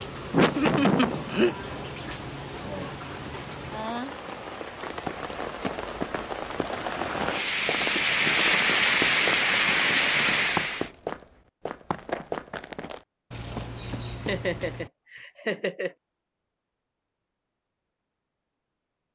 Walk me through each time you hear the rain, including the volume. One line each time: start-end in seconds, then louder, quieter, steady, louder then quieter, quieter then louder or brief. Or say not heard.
0.0-10.9 louder.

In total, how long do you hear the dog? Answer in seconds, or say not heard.
not heard.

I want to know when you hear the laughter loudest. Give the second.
1 s.